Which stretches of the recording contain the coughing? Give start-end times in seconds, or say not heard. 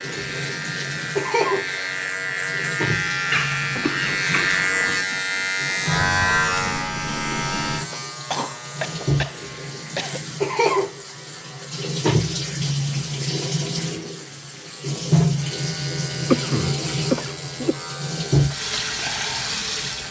3.3-5.0, 8.1-10.2, 16.3-17.8.